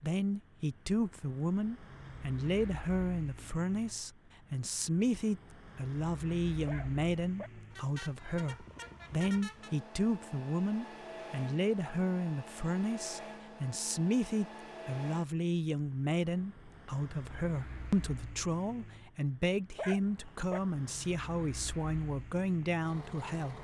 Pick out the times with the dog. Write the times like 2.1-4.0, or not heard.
6.7-7.5, 19.8-20.6.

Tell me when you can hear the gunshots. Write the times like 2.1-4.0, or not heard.
not heard.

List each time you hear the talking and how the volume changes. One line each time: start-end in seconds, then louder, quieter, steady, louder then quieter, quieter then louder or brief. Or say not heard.
0.0-23.5 steady.